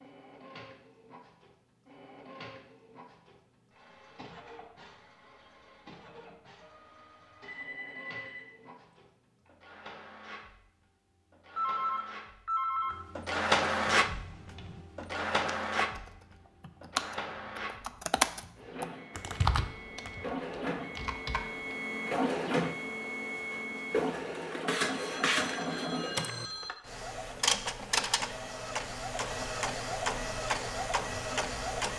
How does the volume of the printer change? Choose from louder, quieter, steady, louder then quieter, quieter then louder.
louder.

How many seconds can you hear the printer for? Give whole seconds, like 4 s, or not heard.
32 s.